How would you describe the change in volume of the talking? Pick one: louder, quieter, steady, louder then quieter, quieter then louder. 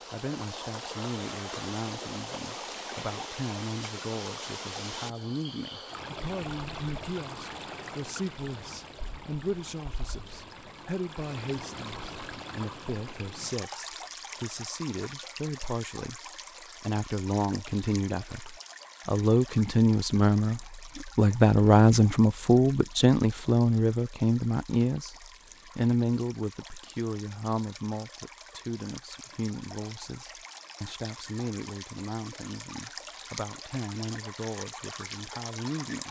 louder then quieter.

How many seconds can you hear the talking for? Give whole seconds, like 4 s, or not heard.
35 s.